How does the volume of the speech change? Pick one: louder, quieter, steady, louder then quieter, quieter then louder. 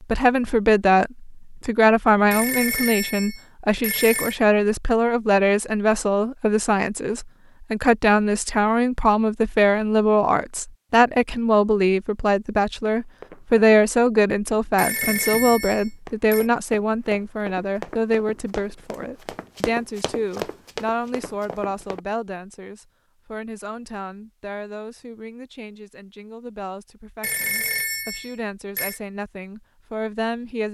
quieter.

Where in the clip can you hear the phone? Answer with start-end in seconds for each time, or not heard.
2.3-4.3, 14.8-16.4, 27.2-29.0.